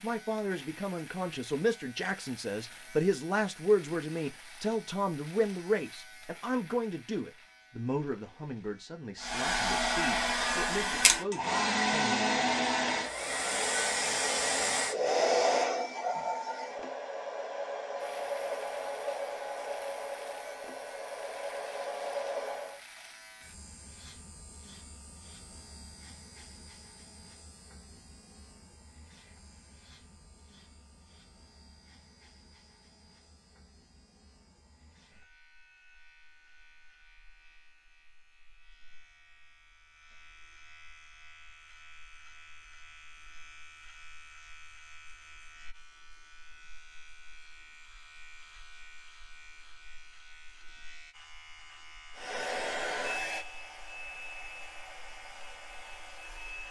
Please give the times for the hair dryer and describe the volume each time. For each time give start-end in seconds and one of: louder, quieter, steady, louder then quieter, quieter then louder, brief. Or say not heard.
9.2-22.8 quieter
52.1-56.6 quieter.